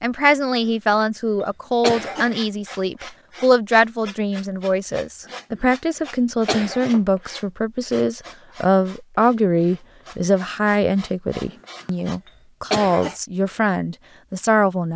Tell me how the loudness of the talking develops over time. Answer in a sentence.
The volume of the talking stays about the same.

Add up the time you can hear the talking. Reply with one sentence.
The talking can be heard for 15 seconds in total.